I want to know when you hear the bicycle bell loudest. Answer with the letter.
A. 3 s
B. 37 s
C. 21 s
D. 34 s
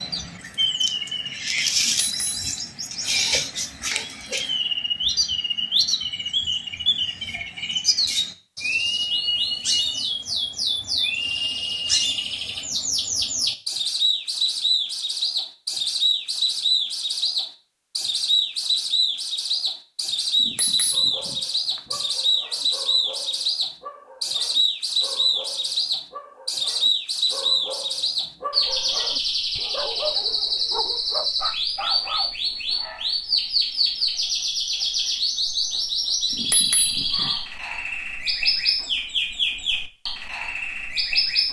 B.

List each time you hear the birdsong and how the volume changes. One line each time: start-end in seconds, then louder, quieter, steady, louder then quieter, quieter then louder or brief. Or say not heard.
0.0-41.4 steady.